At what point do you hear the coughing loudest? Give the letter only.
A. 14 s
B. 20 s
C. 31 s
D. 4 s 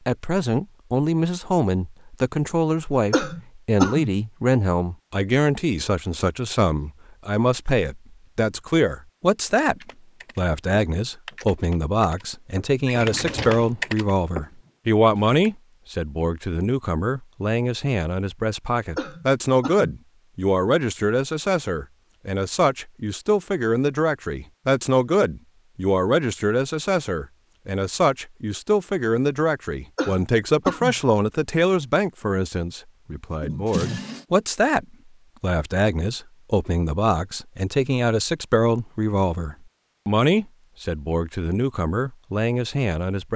D.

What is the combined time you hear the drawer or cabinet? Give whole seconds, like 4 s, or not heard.
2 s.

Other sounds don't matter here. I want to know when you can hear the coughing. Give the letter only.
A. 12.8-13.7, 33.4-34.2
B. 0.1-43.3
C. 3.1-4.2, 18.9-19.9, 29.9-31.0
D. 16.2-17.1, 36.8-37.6
C.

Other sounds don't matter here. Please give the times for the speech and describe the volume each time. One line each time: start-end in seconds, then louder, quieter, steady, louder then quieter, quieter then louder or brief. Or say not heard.
0.1-43.3 steady.